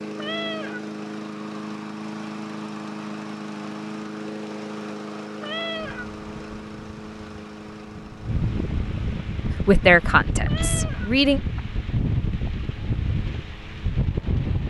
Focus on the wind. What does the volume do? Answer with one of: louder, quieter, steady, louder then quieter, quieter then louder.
louder.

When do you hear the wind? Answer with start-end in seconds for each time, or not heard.
5.8-14.6.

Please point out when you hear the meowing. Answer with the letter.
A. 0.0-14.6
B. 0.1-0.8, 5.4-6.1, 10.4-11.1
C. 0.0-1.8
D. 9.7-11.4
B.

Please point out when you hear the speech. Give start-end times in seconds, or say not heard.
9.7-11.4.